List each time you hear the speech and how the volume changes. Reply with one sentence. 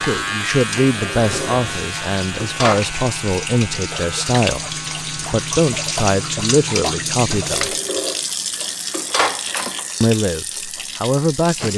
You can hear the speech from 0.0 to 7.8 s, at a steady volume; and briefly from 10.0 to 11.7 s.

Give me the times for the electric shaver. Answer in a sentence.
The electric shaver can be heard from 0.0 to 6.6 s.